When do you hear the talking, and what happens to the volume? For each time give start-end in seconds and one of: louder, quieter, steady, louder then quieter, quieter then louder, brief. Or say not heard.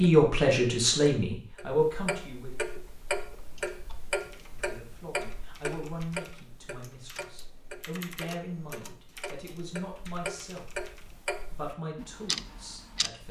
0.0-2.6 brief
4.5-10.7 steady
11.4-13.2 brief.